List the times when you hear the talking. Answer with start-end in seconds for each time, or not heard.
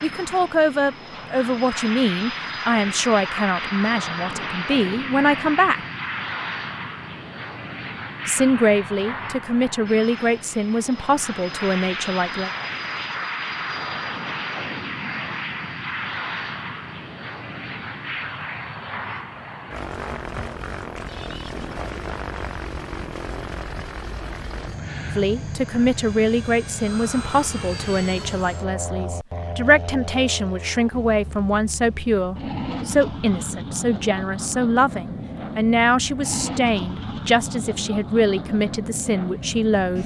0.0-5.8, 8.2-12.5, 25.1-40.0.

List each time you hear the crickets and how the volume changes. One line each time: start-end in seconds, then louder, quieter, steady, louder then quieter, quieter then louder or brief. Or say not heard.
not heard.